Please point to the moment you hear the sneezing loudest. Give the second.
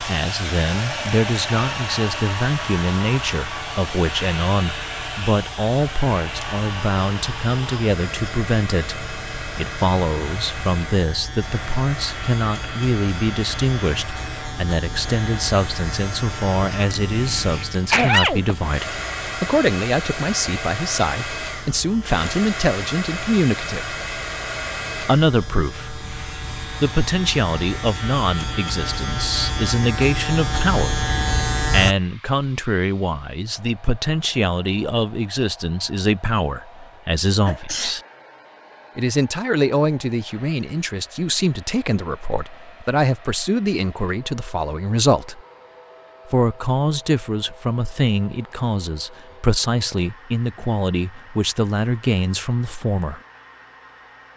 18 s.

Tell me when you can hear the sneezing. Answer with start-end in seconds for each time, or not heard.
16.7-18.6, 37.5-38.0.